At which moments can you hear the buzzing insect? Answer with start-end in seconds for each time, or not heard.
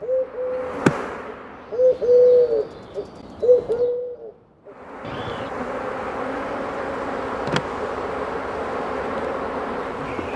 0.0-3.0, 4.7-10.3.